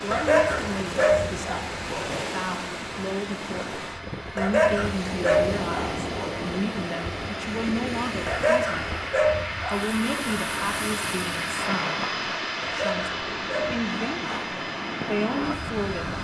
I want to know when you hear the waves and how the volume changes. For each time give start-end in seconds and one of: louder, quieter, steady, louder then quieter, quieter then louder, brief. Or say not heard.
0.0-16.1 steady.